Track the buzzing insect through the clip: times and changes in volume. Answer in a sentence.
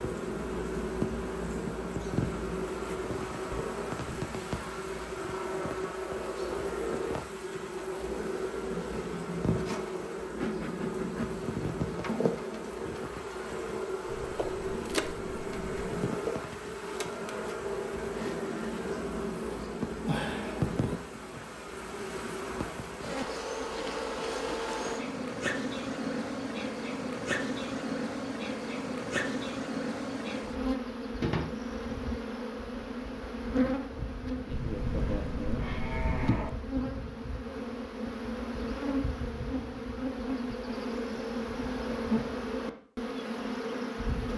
You can hear the buzzing insect from 0.0 to 44.3 s, at a steady volume.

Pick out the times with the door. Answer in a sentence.
The door can be heard from 3.5 to 4.3 s.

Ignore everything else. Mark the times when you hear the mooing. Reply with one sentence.
You can hear the mooing from 14.1 to 15.9 s and from 34.5 to 36.5 s.